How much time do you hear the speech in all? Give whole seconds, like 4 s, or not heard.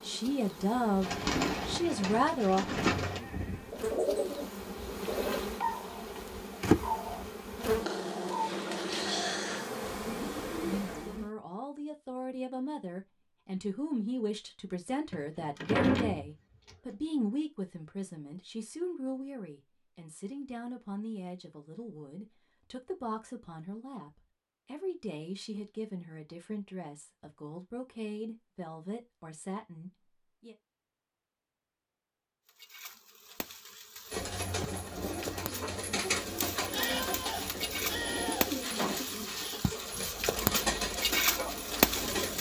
22 s.